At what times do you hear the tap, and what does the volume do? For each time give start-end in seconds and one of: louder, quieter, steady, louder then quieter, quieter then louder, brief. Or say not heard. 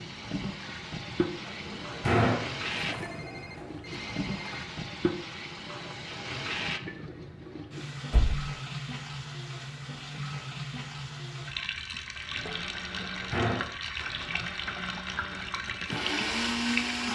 0.0-17.1 steady.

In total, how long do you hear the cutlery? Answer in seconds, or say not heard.
not heard.